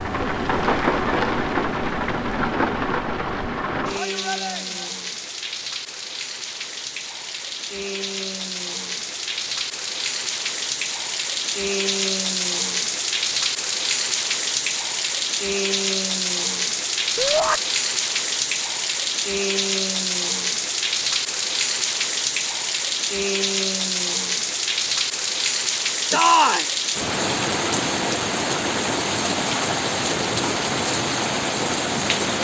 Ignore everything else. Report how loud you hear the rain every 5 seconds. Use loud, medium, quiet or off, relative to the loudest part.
loud, medium, loud, loud, loud, loud, loud.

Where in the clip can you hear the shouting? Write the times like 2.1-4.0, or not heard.
4.0-5.0, 17.1-17.6, 26.1-26.6.